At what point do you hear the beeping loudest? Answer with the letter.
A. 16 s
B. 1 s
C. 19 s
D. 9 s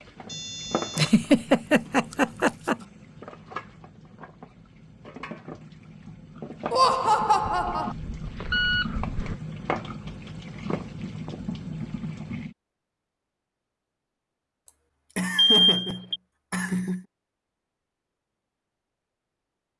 A.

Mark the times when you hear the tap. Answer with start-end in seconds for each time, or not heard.
0.0-12.6.